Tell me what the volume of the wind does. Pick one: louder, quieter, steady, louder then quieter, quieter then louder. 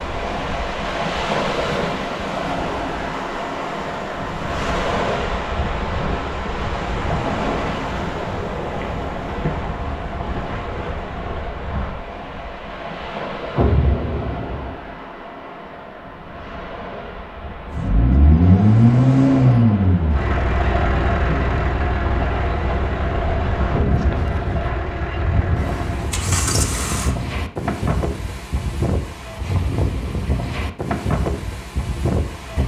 quieter then louder.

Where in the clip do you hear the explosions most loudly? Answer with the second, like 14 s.
14 s.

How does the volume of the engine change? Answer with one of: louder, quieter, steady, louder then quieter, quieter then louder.
quieter.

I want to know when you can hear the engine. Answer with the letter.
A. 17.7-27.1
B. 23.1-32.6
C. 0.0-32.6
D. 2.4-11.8
A.